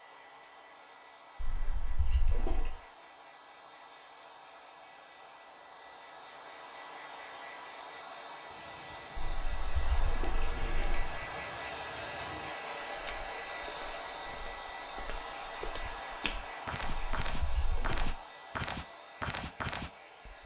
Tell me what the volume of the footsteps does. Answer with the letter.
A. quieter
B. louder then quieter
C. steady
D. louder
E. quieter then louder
D.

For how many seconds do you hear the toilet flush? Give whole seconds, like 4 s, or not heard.
5 s.